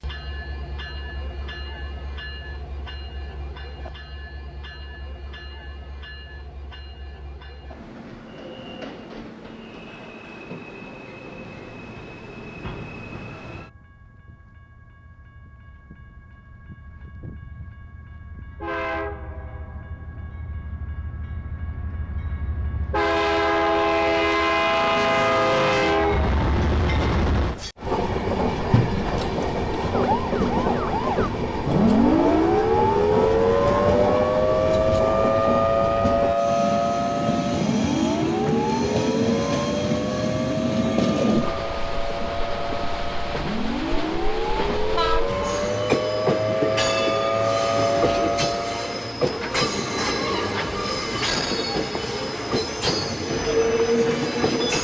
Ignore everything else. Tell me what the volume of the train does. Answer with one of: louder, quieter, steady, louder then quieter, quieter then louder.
louder.